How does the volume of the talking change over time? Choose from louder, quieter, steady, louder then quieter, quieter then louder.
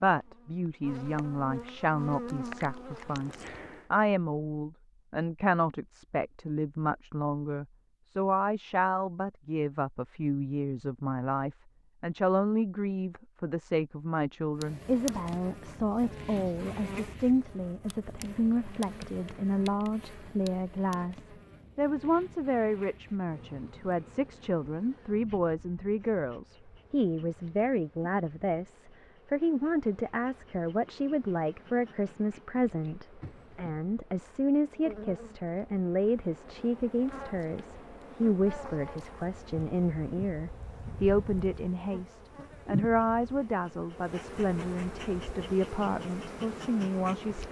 steady.